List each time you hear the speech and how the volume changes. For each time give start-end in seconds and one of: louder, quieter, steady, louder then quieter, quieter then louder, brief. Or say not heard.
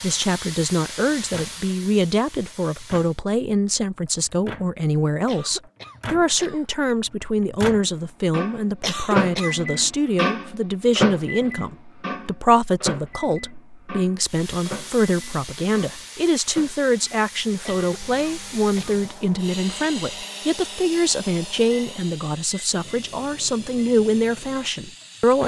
0.0-25.4 steady.